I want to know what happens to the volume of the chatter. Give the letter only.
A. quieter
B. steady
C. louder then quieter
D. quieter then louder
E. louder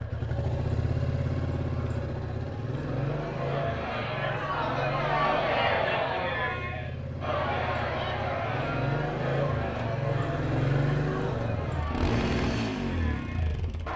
A.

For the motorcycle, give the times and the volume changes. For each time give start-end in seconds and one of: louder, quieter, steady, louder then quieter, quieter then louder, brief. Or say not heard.
0.0-13.9 quieter then louder.